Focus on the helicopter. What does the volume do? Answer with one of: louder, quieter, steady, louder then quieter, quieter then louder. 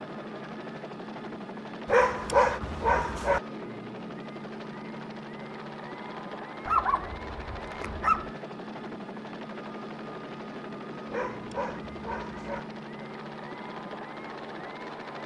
steady.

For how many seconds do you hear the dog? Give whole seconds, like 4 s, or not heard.
5 s.